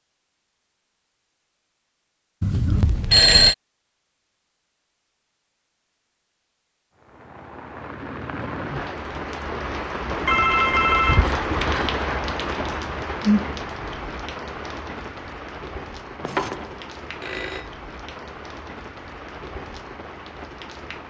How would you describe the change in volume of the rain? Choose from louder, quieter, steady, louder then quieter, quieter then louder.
louder then quieter.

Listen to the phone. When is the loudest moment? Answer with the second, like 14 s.
3 s.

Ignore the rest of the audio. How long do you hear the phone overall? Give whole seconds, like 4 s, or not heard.
4 s.